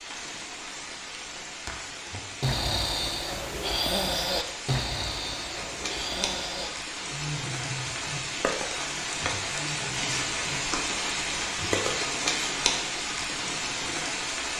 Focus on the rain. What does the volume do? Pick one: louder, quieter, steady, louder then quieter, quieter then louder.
louder.